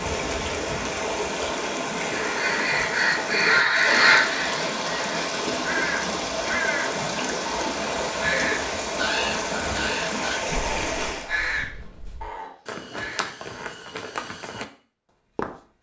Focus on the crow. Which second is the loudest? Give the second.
4 s.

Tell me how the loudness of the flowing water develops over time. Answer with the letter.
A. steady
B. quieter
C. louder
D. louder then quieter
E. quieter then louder
A.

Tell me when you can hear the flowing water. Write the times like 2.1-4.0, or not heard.
0.0-11.3.